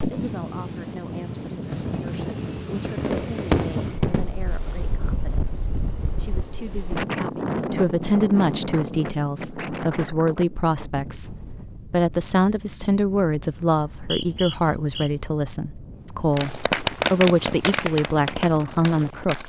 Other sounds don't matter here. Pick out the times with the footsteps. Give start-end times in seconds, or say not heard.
not heard.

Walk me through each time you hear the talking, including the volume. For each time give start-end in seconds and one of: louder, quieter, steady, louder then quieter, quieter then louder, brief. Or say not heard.
0.0-19.4 louder.